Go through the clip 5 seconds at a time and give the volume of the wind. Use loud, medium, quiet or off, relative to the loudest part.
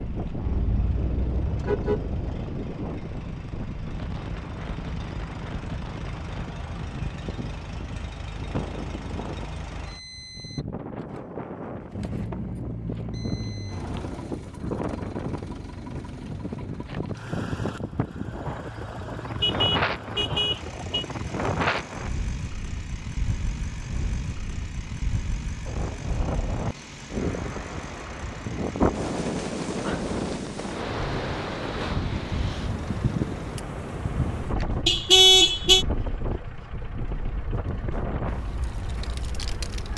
medium, medium, medium, loud, loud, loud, loud, medium.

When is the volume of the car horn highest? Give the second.
35 s.